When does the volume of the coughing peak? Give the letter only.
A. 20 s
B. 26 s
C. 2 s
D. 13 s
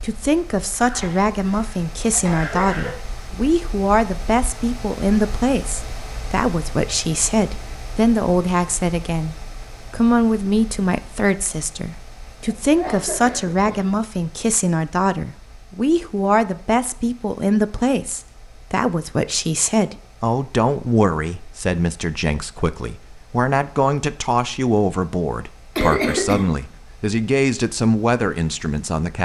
B.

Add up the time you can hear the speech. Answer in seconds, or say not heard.
29 s.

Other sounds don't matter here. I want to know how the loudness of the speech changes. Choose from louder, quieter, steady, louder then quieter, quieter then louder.
steady.